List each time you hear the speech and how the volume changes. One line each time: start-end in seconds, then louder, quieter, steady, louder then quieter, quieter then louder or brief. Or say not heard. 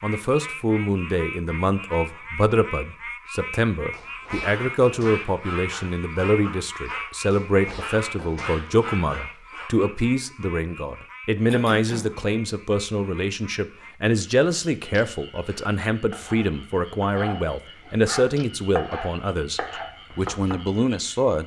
0.0-21.4 steady.